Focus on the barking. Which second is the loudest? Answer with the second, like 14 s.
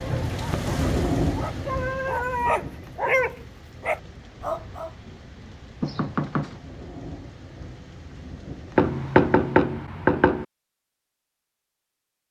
3 s.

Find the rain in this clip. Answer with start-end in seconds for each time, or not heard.
0.0-9.6.